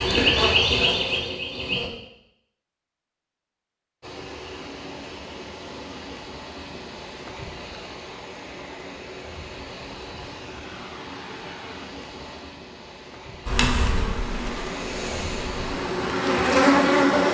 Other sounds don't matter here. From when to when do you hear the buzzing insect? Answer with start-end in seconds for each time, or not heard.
0.0-1.9, 13.4-17.2.